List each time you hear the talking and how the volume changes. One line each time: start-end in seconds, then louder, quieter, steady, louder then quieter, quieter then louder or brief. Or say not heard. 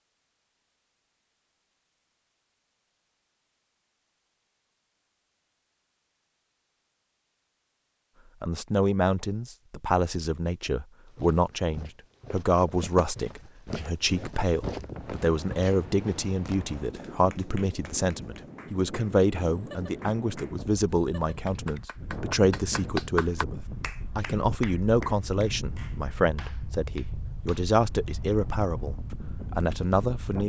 8.4-30.4 steady.